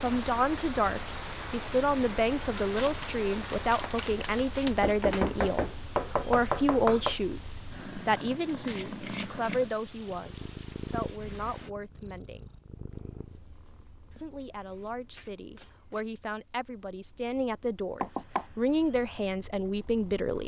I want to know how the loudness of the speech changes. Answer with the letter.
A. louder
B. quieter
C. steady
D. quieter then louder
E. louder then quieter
D.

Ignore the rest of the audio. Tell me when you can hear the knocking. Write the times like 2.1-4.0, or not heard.
4.8-7.2, 18.0-18.9.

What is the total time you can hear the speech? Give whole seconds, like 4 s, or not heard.
19 s.